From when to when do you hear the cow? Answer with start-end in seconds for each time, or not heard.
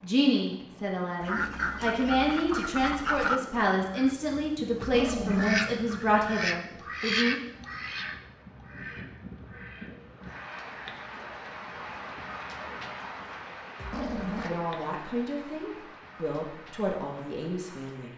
not heard.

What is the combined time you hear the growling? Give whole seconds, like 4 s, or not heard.
2 s.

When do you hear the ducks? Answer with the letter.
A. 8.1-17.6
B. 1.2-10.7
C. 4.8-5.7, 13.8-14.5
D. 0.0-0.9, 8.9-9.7
B.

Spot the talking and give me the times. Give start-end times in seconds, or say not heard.
0.0-7.3, 14.1-18.1.